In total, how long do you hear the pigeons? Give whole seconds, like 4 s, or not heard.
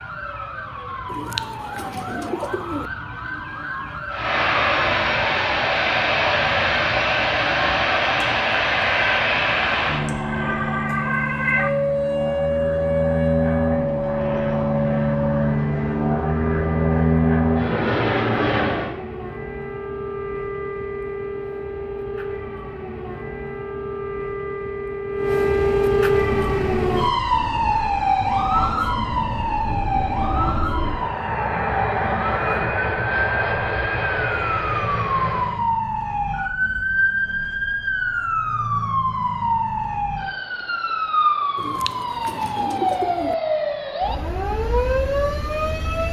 4 s.